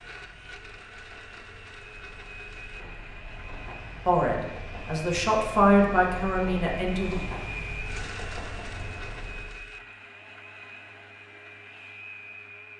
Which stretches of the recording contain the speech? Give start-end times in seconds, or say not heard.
4.0-7.2.